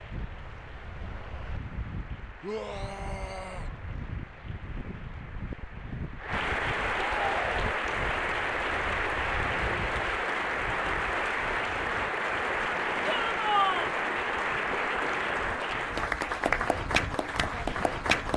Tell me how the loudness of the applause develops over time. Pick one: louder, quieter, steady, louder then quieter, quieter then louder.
louder.